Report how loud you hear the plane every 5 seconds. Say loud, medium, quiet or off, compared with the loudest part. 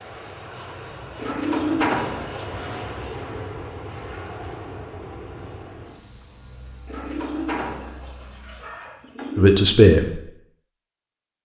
loud, medium, off.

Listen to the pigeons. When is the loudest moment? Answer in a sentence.
The loudest moment of the pigeons is at 2 seconds.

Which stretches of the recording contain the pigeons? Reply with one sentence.
The pigeons can be heard from 1.1 to 2.7 s and from 6.8 to 9.5 s.